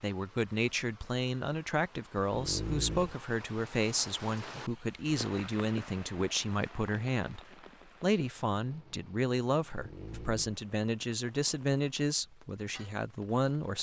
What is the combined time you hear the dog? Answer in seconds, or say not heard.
2 s.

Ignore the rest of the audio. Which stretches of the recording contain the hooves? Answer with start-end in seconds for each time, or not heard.
not heard.